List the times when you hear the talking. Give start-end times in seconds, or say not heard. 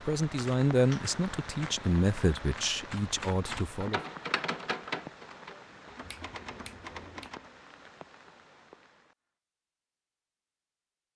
0.1-4.0.